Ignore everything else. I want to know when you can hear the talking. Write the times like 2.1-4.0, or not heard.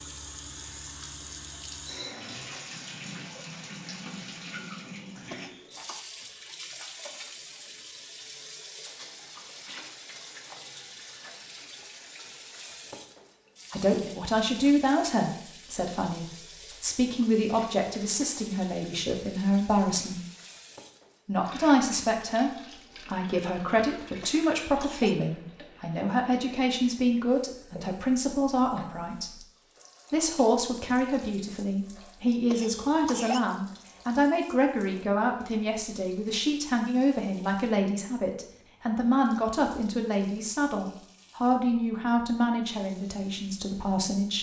13.7-20.2, 21.2-29.4, 30.1-44.3.